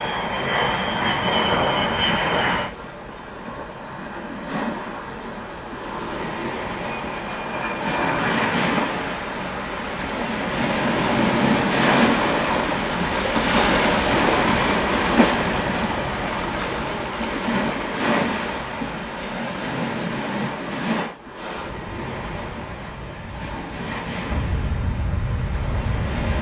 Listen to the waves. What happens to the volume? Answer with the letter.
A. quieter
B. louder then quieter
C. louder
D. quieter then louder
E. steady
B.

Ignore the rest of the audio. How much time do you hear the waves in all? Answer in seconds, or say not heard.
26 s.